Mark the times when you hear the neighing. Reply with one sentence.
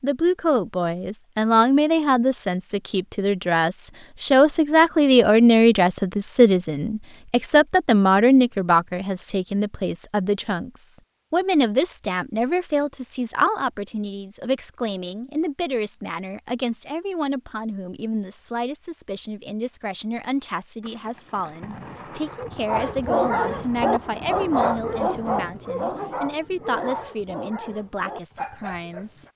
You can't hear the neighing here.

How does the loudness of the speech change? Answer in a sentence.
The loudness of the speech goes down.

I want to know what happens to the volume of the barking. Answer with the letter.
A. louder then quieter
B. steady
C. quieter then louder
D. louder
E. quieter
E.